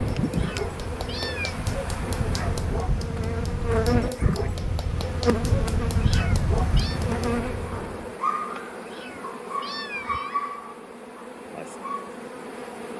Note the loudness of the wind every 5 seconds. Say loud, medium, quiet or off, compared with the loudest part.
loud, loud, off.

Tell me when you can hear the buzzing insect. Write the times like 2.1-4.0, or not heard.
0.0-12.9.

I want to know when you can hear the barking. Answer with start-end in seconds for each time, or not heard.
0.1-12.1.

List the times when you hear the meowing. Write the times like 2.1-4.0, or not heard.
0.3-1.6, 6.0-7.0, 8.8-10.4.